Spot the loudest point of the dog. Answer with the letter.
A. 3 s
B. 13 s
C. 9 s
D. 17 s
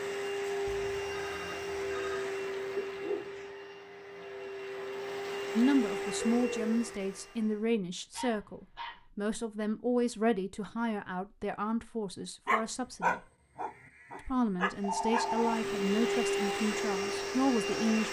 B.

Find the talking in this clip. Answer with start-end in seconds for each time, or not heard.
5.5-13.2, 14.2-18.0.